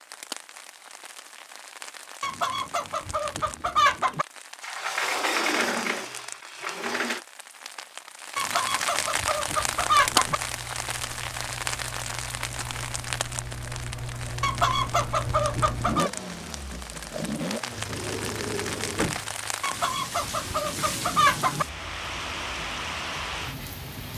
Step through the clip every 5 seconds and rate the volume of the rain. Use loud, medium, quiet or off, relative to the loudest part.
medium, loud, loud, medium, loud.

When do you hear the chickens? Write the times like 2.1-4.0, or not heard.
2.2-4.2, 8.3-10.4, 14.4-16.1, 19.6-21.6.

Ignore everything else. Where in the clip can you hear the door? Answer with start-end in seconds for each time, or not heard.
4.6-7.2, 17.7-19.2.